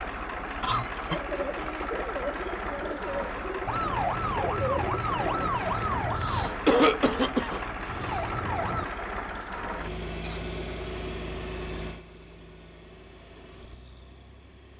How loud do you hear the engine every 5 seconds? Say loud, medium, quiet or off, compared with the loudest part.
loud, loud, medium.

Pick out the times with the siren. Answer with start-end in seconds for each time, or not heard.
3.6-8.8.